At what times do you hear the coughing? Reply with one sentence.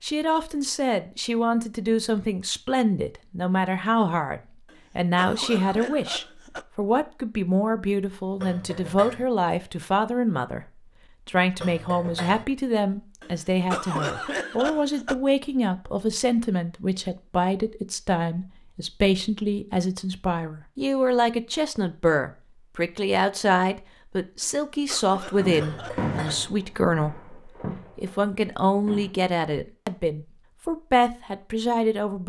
The coughing can be heard from 4.7 to 6.7 s, from 13.2 to 15.2 s and from 24.4 to 26.1 s.